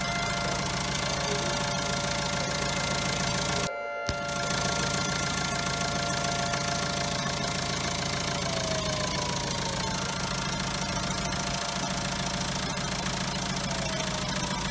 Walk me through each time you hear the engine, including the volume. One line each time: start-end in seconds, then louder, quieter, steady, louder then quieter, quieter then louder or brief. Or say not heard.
0.0-14.6 steady.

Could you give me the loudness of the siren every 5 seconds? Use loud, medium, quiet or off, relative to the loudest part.
loud, loud, medium.